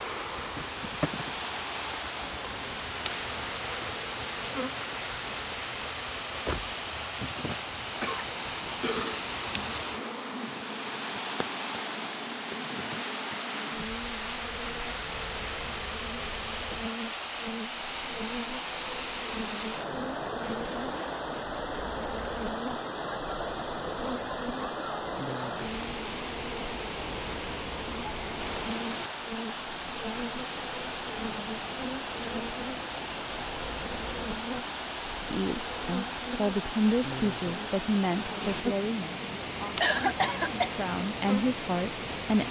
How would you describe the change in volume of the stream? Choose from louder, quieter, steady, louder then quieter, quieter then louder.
steady.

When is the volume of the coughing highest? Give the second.
40 s.